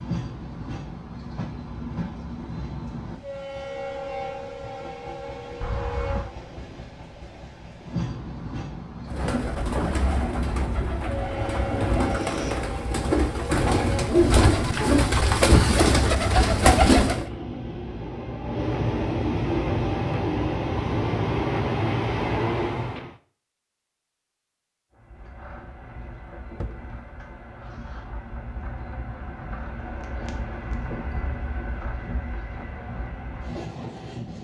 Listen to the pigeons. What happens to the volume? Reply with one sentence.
The loudness of the pigeons goes up.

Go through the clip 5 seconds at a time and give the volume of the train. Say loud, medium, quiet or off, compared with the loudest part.
medium, medium, medium, loud, loud, quiet, medium.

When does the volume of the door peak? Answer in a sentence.
The volume of the door peaks at 6 seconds.